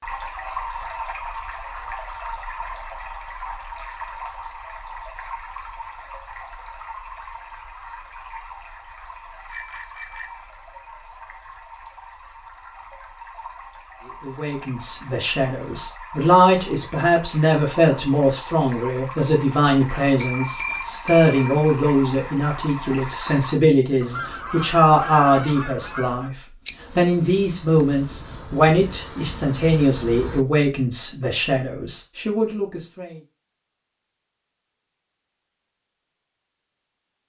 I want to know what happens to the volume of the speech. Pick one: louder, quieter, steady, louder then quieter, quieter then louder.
steady.